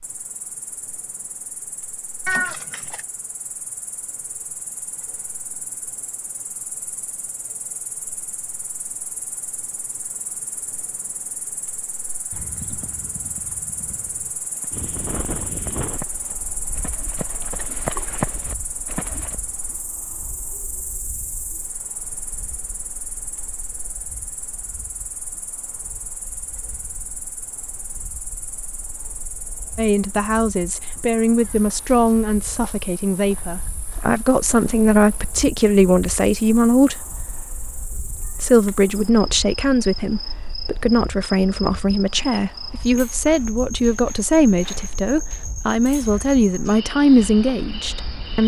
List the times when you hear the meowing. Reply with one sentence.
The meowing can be heard from 2.2 to 3.0 s and from 38.2 to 38.9 s.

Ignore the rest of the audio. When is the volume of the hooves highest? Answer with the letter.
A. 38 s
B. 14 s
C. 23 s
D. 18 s
D.